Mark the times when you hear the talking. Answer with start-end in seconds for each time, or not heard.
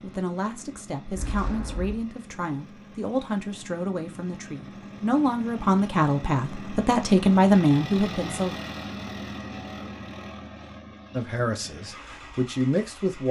0.0-8.6, 11.1-13.2.